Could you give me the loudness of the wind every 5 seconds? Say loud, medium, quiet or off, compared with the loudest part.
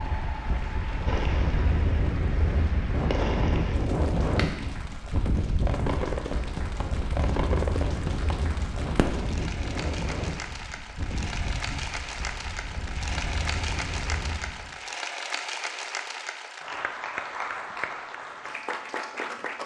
loud, loud, medium, off.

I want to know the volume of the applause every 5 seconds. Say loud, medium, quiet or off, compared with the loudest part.
medium, medium, loud, loud.